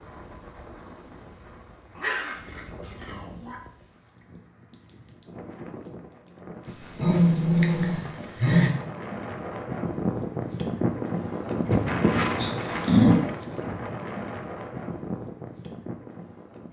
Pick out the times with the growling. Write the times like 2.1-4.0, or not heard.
1.9-3.6, 6.7-8.7, 12.3-13.2.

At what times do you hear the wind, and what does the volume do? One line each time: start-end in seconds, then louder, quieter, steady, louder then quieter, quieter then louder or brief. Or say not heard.
0.0-16.6 louder then quieter.